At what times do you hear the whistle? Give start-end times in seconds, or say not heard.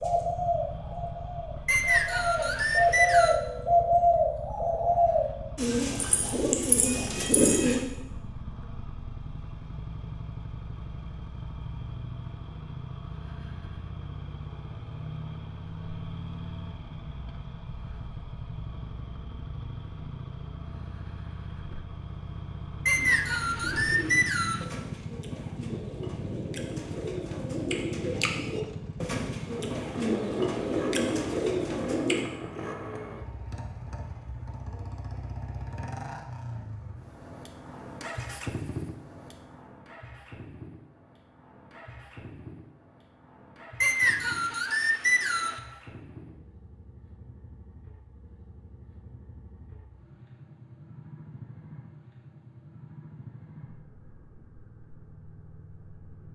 1.6-3.4, 22.9-24.6, 43.8-45.6.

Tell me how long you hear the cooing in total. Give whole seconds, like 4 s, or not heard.
17 s.